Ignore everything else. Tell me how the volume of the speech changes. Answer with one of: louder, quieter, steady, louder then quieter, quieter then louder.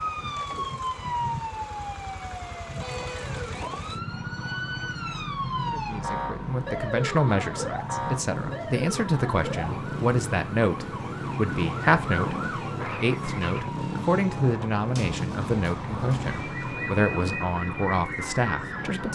steady.